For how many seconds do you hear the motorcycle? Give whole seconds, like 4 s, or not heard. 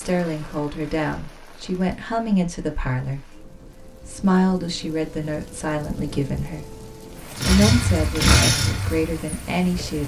3 s.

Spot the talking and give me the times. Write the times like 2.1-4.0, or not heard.
0.0-3.2, 4.0-6.8, 7.5-10.0.